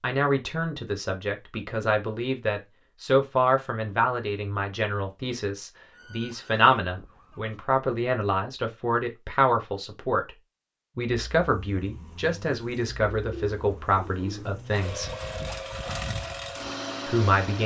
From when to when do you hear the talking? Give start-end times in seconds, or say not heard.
0.0-10.3, 10.9-15.1, 17.1-17.6.